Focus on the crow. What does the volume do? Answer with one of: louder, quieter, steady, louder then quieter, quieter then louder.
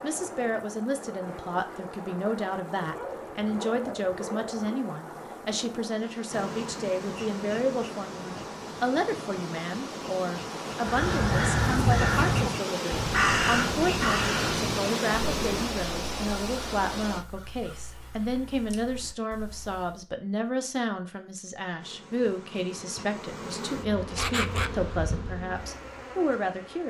quieter.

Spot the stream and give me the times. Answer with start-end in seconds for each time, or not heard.
0.0-17.2.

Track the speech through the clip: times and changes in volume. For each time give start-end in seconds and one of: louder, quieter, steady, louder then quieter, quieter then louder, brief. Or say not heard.
0.0-26.8 steady.